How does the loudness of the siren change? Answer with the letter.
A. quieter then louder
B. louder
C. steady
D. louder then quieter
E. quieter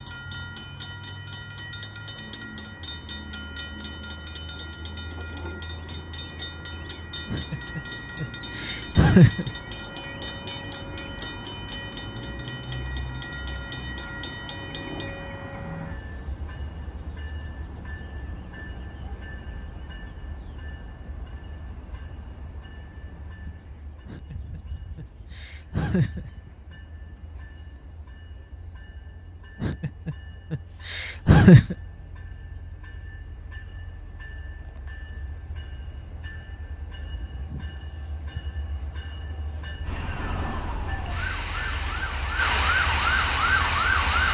B.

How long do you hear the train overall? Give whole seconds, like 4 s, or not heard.
44 s.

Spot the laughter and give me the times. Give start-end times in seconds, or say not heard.
7.3-9.5, 24.1-26.3, 29.6-31.8.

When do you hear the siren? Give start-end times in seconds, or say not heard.
39.8-44.2.